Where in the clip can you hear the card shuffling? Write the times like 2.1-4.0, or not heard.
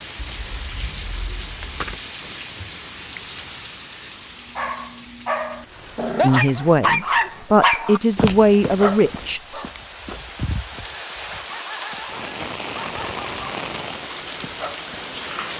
0.2-2.0.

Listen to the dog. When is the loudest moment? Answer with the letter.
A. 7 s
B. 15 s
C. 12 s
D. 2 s
A.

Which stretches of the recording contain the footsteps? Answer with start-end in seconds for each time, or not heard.
not heard.